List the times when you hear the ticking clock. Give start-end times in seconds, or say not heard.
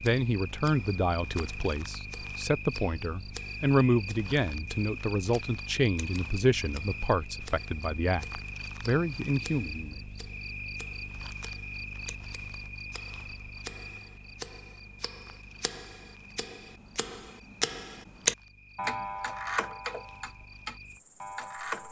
0.0-21.8.